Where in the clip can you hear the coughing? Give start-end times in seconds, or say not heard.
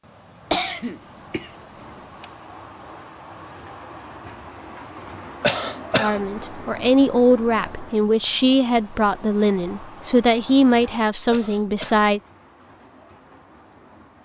0.5-2.2, 5.4-6.2, 11.3-12.0.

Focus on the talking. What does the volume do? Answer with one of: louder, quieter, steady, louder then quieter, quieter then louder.
steady.